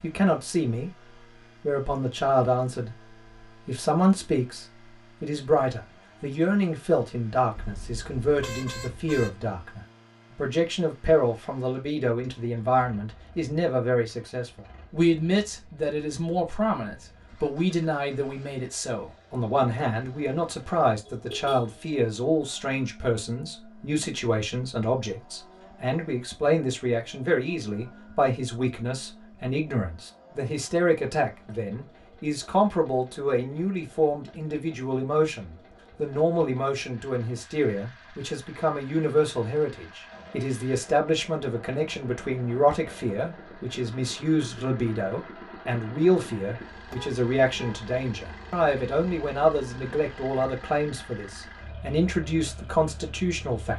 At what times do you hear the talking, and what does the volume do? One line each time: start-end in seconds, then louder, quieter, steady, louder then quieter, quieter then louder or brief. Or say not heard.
0.0-0.9 brief
1.6-3.0 brief
3.6-53.7 steady.